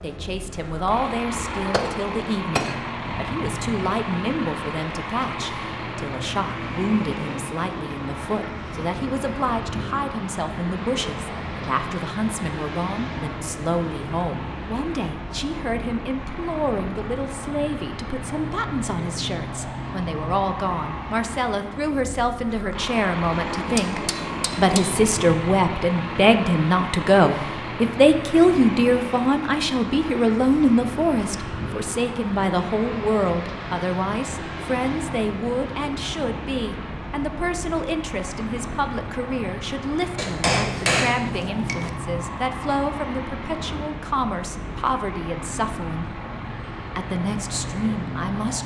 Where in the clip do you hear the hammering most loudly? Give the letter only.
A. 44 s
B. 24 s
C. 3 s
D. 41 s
D.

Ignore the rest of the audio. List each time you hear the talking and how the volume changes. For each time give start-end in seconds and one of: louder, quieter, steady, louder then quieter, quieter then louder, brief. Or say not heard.
0.0-46.2 louder then quieter
47.0-48.6 brief.